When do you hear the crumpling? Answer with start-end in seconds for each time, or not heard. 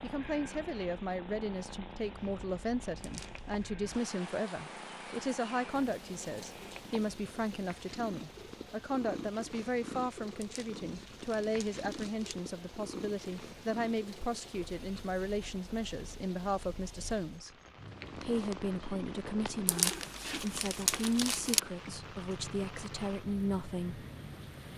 3.0-3.6, 10.4-12.3, 19.6-21.6.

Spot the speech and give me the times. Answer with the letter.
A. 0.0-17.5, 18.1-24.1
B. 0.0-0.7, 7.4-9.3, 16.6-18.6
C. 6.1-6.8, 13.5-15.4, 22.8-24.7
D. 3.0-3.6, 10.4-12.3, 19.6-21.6
A.